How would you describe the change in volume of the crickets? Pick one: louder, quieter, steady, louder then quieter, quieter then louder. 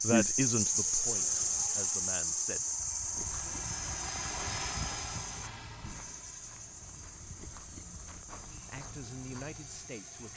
quieter.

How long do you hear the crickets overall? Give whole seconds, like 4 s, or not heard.
10 s.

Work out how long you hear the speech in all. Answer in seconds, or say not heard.
4 s.